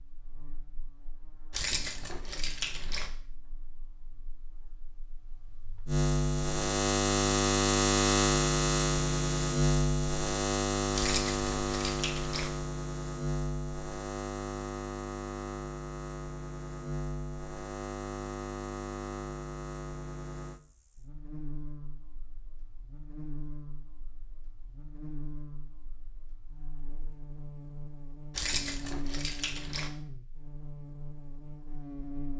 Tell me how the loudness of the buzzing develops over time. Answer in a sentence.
The loudness of the buzzing goes up, then down.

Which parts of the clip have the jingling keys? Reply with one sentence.
You can hear the jingling keys from 1.5 to 3.1 s, from 10.9 to 12.5 s and from 28.4 to 29.9 s.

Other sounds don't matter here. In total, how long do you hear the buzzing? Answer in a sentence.
You can hear the buzzing for 32 seconds altogether.